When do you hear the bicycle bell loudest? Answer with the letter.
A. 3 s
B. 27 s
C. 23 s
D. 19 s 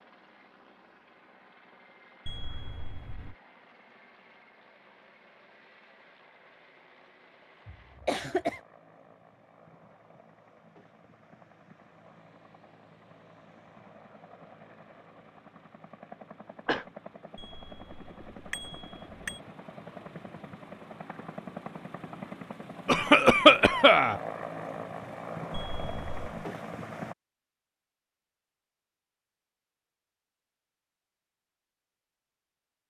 D.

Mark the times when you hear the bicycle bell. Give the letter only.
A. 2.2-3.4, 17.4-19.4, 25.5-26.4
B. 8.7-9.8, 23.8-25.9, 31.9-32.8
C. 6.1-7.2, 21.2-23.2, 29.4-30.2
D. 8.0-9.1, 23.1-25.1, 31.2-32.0
A.